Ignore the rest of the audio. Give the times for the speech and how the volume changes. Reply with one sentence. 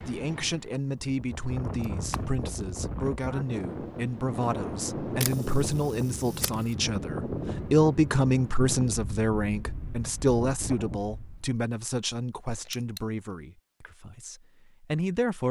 You can hear the speech from 0.0 to 15.4 s, getting louder then quieter.